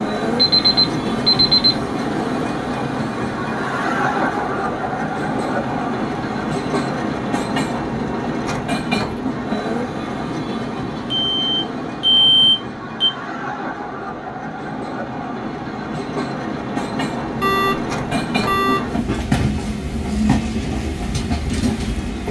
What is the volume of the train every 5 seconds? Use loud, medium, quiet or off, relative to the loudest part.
loud, loud, medium, loud, loud.